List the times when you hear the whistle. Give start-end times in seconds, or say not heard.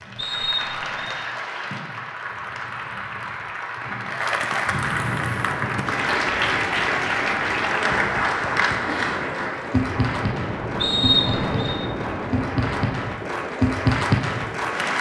0.1-1.1, 10.8-11.8.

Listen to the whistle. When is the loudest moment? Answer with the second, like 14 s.
11 s.